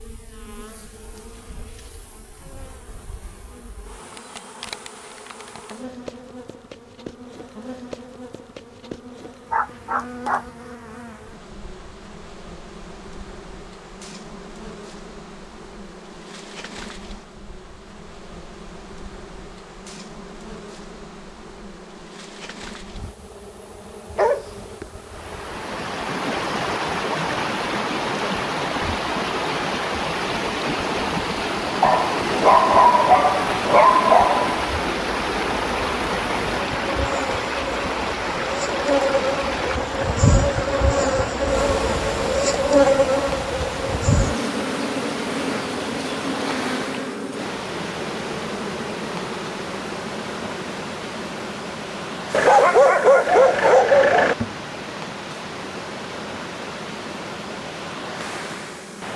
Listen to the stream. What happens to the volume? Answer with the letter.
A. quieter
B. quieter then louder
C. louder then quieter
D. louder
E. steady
A.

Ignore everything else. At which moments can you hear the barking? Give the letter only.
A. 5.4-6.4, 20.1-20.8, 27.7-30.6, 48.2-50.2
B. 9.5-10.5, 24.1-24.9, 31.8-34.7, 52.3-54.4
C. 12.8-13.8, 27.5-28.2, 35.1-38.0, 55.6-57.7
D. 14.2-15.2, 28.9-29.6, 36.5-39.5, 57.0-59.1
B.